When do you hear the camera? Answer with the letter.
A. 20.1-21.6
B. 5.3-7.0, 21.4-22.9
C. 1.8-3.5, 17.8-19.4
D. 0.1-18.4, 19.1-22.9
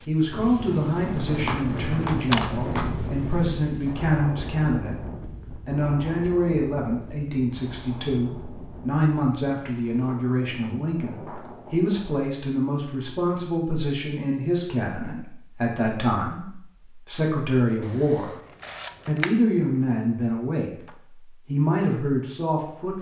C.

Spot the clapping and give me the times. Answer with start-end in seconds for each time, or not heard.
1.4-3.0.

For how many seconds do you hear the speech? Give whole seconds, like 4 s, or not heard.
22 s.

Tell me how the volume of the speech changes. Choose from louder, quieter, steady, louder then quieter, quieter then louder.
steady.